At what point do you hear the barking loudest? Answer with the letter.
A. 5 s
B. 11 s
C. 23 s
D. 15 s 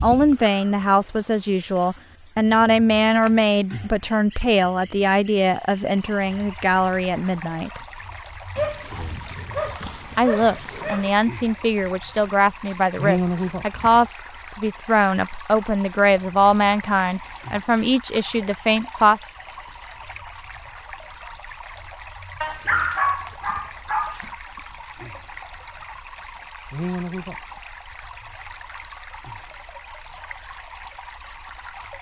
C.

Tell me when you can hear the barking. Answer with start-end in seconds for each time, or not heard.
8.6-11.1, 22.4-24.3.